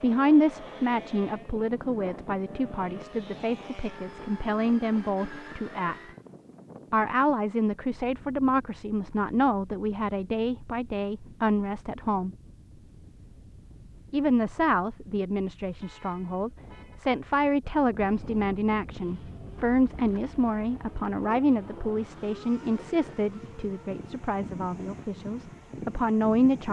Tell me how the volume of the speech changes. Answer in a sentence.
The loudness of the speech stays about the same.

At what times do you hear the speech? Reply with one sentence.
The speech can be heard from 0.0 to 6.0 s, from 6.9 to 12.3 s and from 14.1 to 26.6 s.